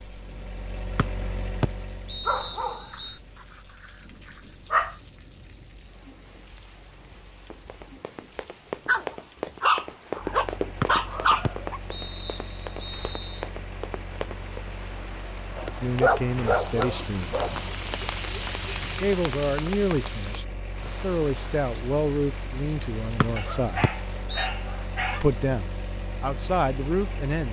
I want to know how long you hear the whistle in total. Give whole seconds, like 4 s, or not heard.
6 s.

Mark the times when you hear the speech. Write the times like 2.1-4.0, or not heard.
15.8-17.4, 18.8-23.9, 25.1-27.4.